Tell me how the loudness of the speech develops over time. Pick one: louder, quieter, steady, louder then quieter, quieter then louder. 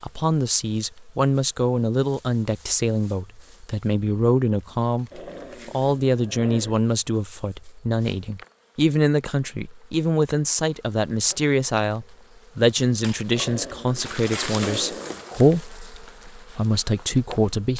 steady.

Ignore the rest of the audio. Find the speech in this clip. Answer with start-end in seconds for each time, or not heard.
0.0-17.7.